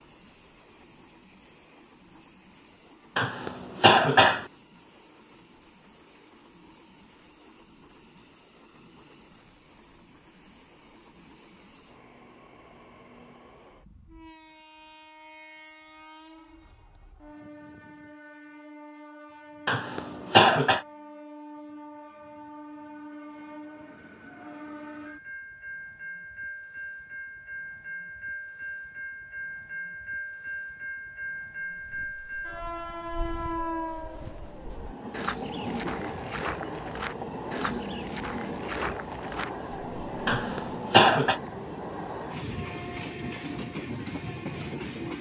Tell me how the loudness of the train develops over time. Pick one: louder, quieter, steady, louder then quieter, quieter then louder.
louder.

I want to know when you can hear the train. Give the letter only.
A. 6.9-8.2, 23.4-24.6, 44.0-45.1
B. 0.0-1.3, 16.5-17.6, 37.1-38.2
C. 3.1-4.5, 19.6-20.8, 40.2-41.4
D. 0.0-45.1
D.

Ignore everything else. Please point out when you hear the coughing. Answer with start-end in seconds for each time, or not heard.
3.1-4.5, 19.6-20.8, 40.2-41.4.